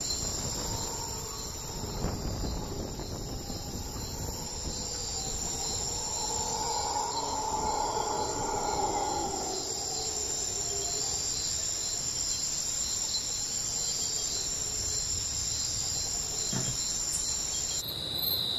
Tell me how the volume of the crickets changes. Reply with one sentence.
The volume of the crickets goes up.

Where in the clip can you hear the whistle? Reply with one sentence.
The whistle can't be heard in this clip.